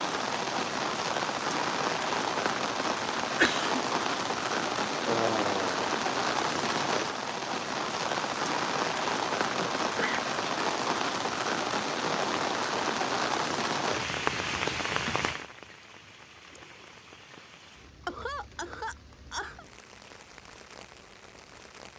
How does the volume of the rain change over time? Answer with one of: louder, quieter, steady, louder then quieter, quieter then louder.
quieter.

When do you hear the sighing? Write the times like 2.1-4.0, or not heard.
5.0-5.9.